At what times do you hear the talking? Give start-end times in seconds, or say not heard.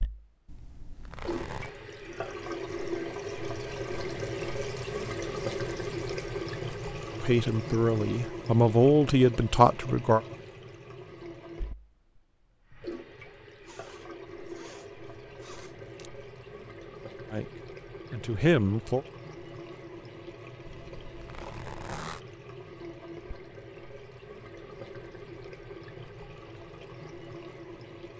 7.2-10.2, 17.3-19.1.